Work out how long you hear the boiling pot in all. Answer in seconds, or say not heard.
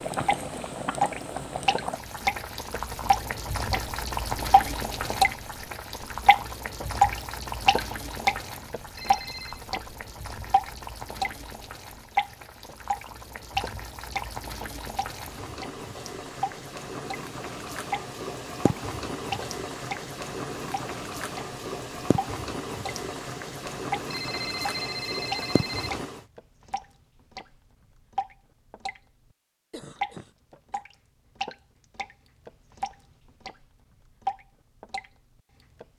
26 s.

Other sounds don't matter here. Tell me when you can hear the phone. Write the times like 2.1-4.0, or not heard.
8.9-9.7, 24.1-25.9.